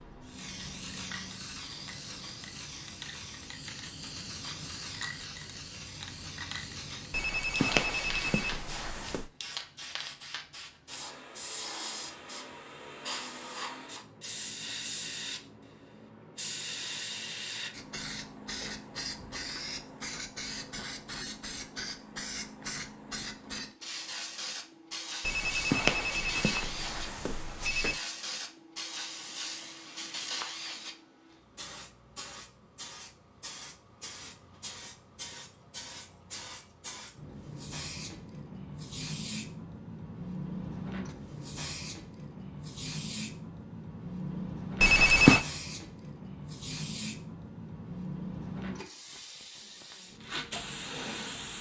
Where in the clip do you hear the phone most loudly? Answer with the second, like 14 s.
45 s.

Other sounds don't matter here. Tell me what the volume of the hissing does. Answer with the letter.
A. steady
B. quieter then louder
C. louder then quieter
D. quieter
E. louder
A.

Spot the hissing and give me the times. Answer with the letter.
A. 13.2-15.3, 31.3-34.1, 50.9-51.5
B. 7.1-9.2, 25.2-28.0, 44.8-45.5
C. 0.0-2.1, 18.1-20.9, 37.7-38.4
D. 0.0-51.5
D.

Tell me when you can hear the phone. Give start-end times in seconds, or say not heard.
7.1-9.2, 25.2-28.0, 44.8-45.5.